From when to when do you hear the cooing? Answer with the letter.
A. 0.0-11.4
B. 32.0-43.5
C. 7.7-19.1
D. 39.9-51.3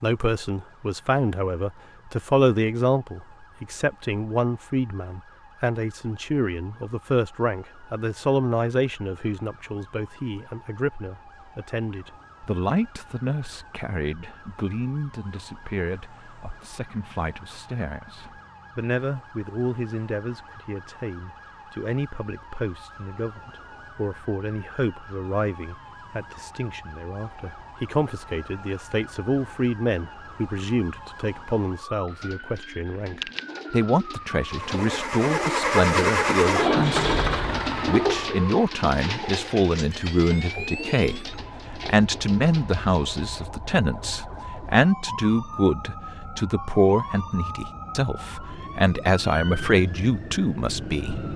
B.